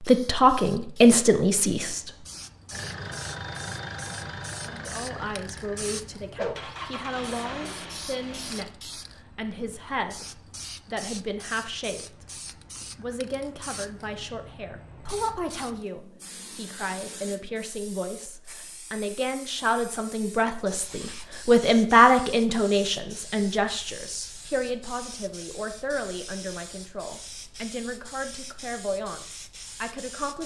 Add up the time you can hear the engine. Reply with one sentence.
You can hear the engine for 6 seconds altogether.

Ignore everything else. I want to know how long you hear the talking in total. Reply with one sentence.
The talking can be heard for 27 seconds in total.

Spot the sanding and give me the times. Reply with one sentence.
The sanding can't be heard in this clip.